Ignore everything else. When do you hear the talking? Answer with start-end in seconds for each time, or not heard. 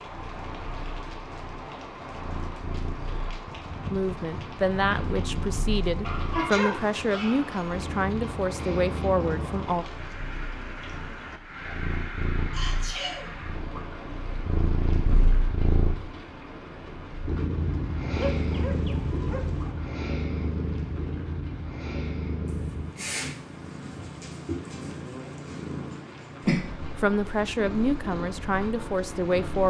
3.9-9.8, 26.9-29.6.